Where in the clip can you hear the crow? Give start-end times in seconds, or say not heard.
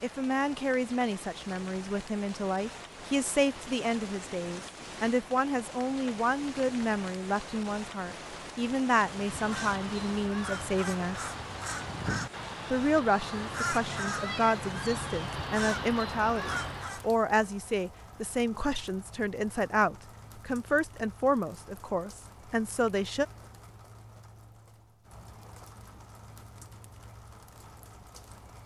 9.1-17.1.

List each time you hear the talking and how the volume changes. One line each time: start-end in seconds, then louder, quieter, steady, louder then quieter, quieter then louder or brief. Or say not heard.
0.0-11.3 steady
12.7-23.2 steady.